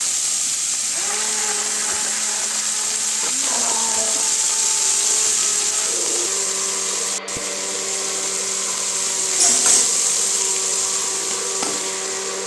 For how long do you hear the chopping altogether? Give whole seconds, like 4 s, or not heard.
not heard.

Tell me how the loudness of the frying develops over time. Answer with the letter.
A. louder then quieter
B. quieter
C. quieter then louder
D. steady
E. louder
D.